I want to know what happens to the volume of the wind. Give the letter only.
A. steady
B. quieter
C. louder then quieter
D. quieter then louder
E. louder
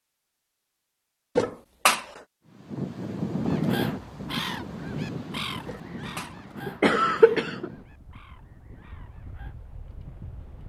B.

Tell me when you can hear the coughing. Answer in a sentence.
You can hear the coughing from 1.4 to 2.2 s and from 5.7 to 7.7 s.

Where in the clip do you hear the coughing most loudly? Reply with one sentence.
The volume of the coughing peaks at 7 seconds.